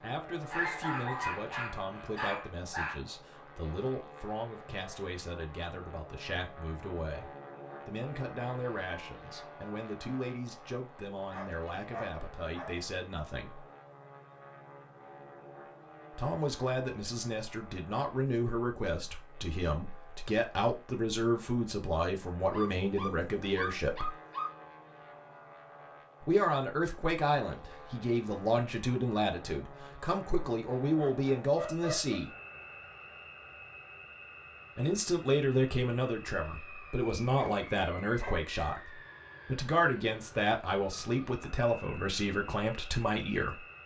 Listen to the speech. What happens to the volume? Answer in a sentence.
The loudness of the speech goes up.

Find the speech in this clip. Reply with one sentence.
You can hear the speech from 0.0 to 13.7 s, from 16.1 to 24.1 s, from 26.2 to 32.2 s and from 34.8 to 43.6 s.